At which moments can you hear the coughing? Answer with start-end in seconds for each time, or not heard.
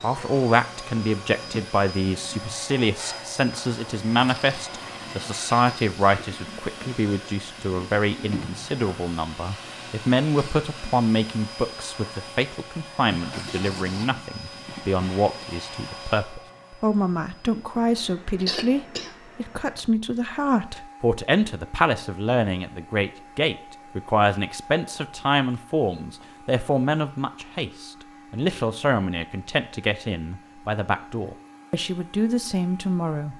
8.3-9.2, 18.4-19.1.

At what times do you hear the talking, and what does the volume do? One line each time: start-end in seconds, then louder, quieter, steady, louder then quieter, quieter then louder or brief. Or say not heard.
0.0-33.3 steady.